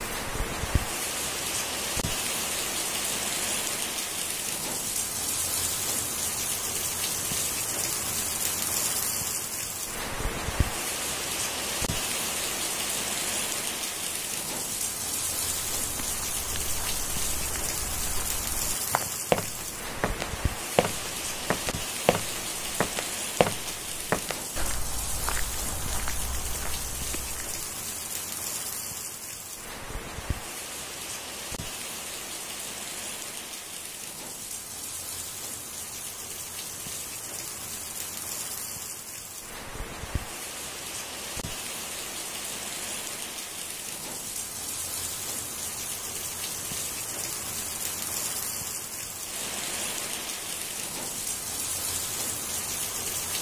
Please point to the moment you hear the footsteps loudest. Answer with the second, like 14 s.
19 s.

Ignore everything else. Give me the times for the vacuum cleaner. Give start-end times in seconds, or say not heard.
not heard.